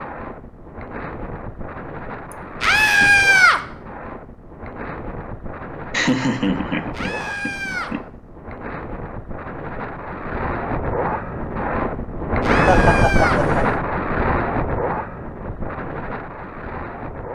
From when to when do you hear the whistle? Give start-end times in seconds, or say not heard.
not heard.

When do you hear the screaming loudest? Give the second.
3 s.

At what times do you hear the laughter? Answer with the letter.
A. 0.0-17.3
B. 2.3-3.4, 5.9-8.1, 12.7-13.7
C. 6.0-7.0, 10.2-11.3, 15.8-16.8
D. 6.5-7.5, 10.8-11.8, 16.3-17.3
B.